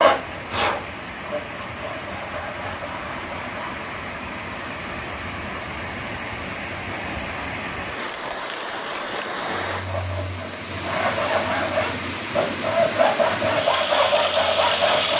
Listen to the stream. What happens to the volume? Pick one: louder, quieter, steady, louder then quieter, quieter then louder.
louder.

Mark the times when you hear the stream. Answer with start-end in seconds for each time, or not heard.
0.0-15.1.